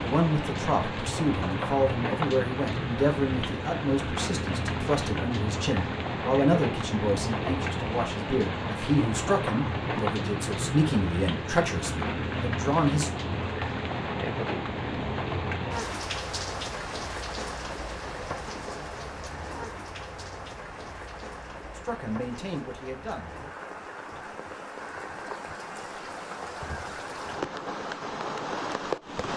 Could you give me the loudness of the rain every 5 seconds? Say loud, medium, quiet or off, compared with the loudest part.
loud, loud, loud, loud, medium, loud.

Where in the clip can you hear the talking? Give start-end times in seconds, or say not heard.
0.0-13.1, 21.8-23.3.